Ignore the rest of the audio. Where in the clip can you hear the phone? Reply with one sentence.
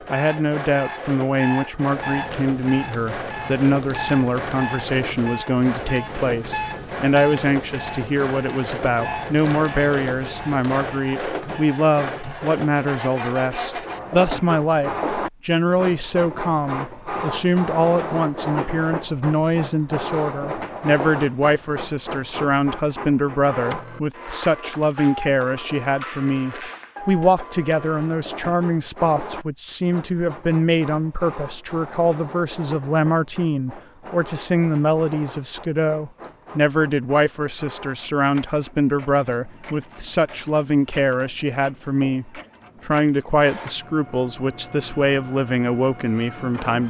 The phone can't be heard in this clip.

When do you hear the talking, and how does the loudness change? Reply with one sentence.
You can hear the talking from 0.1 to 46.8 s, at a steady volume.